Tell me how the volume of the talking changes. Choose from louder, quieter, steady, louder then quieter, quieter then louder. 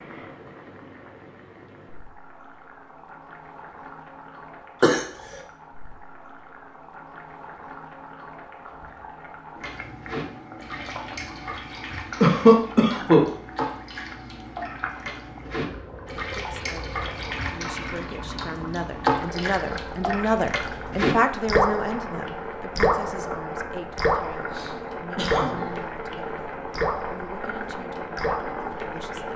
louder then quieter.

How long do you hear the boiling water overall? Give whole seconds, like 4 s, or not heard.
29 s.